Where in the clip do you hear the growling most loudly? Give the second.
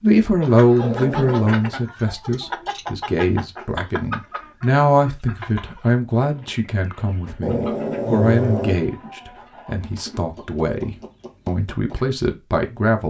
8 s.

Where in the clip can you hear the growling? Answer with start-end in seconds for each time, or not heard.
0.8-1.6, 7.4-8.8.